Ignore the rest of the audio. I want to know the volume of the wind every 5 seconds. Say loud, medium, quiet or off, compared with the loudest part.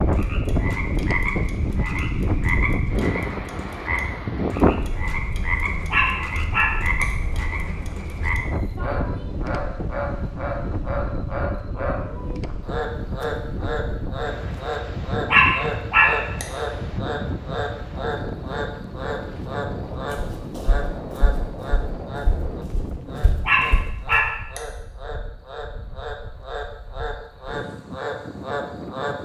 loud, medium, medium, medium, medium, quiet.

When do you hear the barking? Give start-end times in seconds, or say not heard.
5.9-7.0, 15.2-16.4, 23.4-24.6.